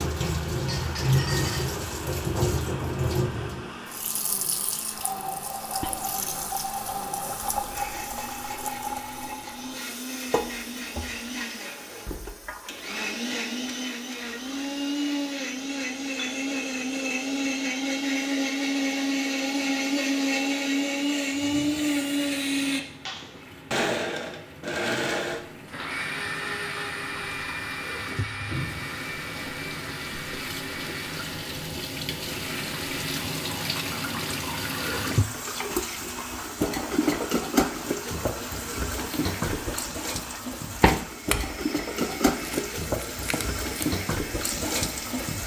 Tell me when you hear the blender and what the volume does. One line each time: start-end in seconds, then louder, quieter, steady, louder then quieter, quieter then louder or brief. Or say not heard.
0.0-45.4 louder then quieter.